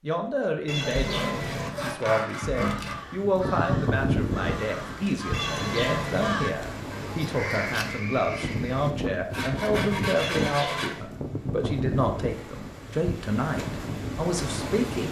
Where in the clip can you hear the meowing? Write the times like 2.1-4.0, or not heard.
0.7-1.7, 5.3-6.3, 10.2-11.1.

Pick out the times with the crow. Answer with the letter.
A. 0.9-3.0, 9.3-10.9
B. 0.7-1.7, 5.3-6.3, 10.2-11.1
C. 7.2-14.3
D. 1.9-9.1
D.